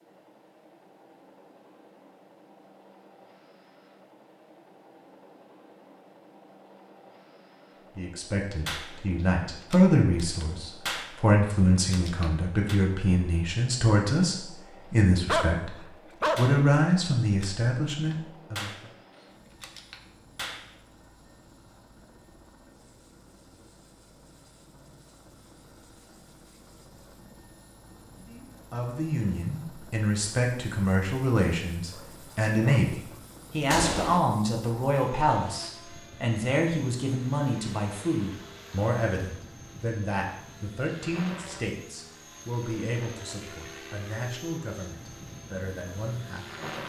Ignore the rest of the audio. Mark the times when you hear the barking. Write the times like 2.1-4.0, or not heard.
15.2-16.6, 31.9-33.0.